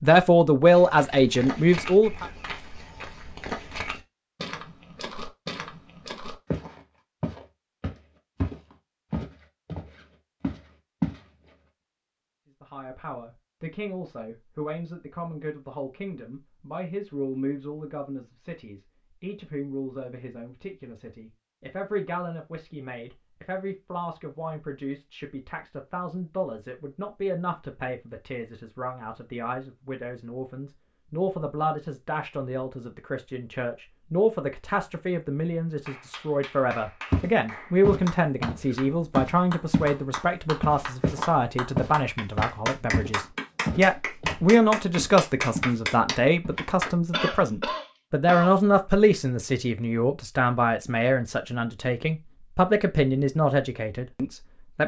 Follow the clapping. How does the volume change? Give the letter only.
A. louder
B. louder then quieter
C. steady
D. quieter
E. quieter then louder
A.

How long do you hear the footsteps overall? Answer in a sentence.
You can hear the footsteps for 19 seconds altogether.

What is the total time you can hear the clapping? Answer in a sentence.
The clapping can be heard for 11 seconds in total.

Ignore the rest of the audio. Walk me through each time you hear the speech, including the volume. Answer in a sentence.
You can hear the speech briefly from 0.0 to 2.2 s; and from 12.6 to 54.8 s, getting louder.